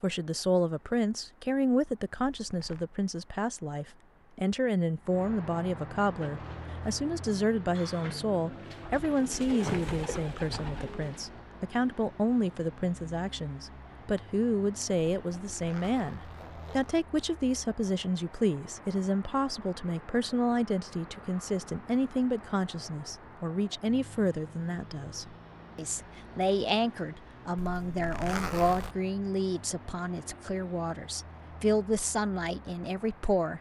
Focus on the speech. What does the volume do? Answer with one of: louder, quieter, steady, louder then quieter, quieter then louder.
steady.